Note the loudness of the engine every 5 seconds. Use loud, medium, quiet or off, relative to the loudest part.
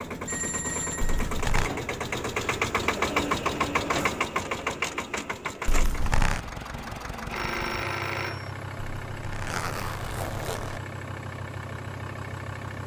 loud, medium, medium.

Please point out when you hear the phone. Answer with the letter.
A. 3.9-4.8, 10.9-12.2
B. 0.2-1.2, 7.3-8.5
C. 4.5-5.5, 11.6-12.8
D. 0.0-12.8
B.